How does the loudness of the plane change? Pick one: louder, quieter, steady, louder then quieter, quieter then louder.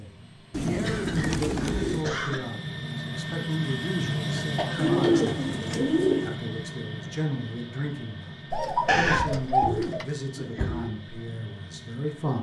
louder then quieter.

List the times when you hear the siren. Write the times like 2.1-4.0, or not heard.
not heard.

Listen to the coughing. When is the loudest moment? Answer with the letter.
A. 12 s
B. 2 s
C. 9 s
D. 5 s
C.